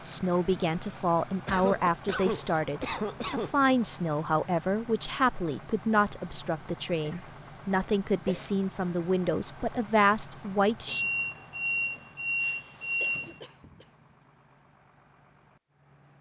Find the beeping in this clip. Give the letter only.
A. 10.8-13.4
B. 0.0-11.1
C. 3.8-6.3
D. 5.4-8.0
A.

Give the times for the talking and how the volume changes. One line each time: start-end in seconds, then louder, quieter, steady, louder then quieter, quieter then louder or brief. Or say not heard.
0.0-11.1 steady.